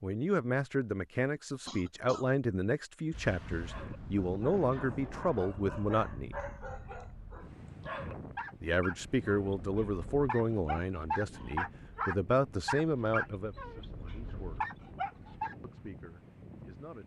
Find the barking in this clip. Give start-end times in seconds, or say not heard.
3.6-15.6.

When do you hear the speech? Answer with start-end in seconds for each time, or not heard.
0.0-6.3, 8.6-14.8, 15.6-17.0.